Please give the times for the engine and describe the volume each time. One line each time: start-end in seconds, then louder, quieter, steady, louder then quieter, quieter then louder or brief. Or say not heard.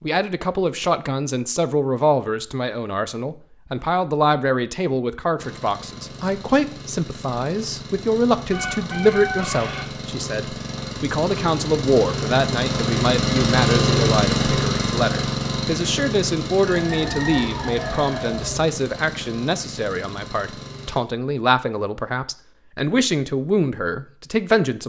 5.3-21.0 louder then quieter.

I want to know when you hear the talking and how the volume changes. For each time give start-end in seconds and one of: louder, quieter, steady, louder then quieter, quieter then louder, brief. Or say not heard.
0.0-24.8 steady.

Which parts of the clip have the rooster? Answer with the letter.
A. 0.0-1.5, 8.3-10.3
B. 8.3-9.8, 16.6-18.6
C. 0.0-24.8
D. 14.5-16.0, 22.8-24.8
B.